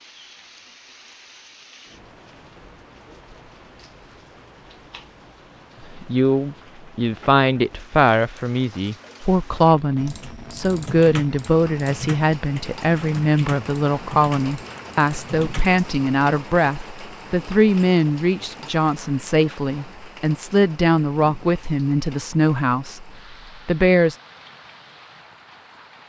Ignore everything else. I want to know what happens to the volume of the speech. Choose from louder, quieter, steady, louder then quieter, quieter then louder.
steady.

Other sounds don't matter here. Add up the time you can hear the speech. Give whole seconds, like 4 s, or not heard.
18 s.